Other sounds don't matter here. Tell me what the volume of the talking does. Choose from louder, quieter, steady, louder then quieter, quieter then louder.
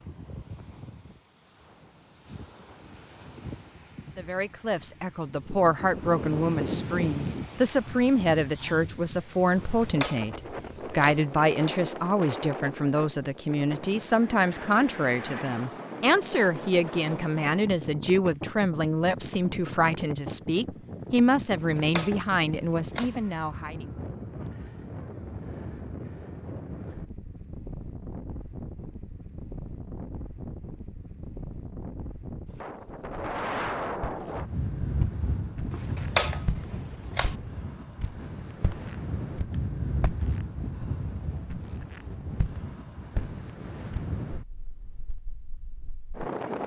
steady.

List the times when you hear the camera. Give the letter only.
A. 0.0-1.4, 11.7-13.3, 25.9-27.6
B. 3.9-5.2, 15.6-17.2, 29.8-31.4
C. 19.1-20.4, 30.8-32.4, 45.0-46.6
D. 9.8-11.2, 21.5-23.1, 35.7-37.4
D.